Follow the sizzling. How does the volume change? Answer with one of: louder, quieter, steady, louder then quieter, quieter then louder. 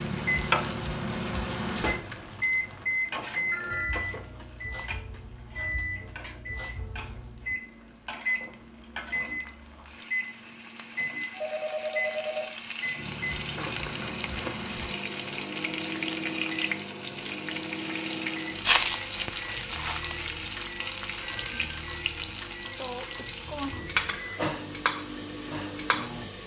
quieter then louder.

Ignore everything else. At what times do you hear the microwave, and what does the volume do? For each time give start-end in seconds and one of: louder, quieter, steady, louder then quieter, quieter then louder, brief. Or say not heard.
0.0-26.4 quieter.